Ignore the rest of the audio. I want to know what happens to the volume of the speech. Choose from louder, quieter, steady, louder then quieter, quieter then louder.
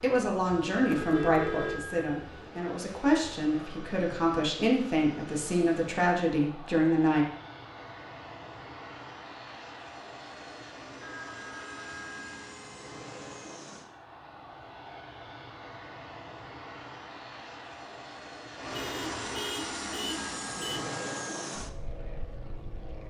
quieter then louder.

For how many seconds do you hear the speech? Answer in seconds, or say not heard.
7 s.